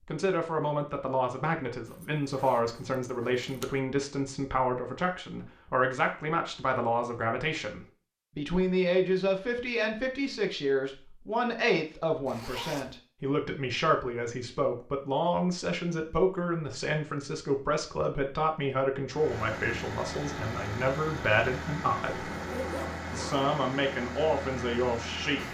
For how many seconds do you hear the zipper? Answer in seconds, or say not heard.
3 s.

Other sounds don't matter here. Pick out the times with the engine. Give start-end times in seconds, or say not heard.
19.1-25.4.